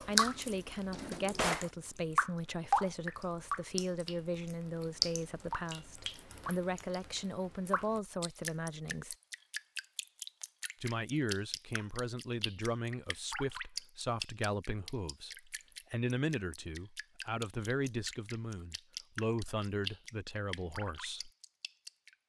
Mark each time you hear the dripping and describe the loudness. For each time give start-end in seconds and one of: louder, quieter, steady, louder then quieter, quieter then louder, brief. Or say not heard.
0.0-22.1 quieter.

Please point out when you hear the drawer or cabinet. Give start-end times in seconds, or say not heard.
0.9-1.7.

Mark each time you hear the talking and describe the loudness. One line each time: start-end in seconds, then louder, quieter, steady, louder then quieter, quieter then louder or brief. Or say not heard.
0.0-9.2 steady
10.8-21.3 steady.